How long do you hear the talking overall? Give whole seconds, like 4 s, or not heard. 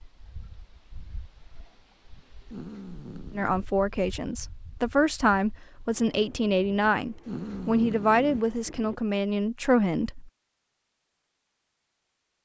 7 s.